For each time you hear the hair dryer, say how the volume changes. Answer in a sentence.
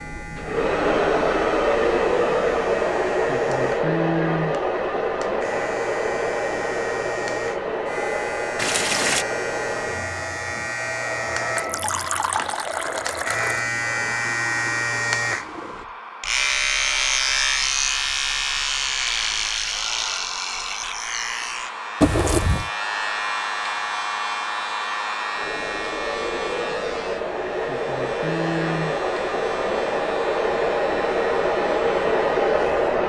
The hair dryer can be heard from 0.0 to 33.0 s, getting quieter then louder.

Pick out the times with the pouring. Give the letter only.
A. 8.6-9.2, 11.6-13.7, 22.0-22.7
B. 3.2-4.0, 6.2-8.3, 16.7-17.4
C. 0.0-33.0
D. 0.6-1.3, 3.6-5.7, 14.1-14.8
A.